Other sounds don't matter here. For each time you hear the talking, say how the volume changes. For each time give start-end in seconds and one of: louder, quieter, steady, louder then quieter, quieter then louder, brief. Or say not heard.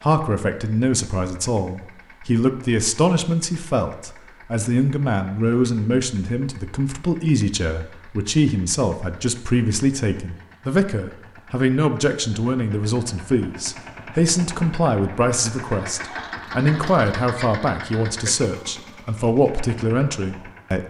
0.0-20.8 steady.